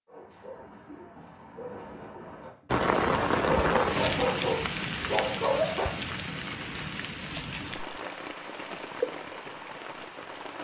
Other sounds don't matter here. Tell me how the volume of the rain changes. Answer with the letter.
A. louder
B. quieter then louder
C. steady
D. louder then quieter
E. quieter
E.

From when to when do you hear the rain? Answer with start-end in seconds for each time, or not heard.
2.7-10.5.